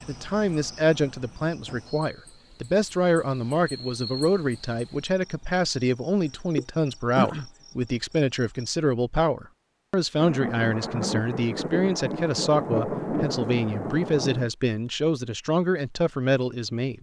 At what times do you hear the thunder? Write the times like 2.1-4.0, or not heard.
10.2-14.5.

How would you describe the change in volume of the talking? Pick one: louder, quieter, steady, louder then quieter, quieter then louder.
steady.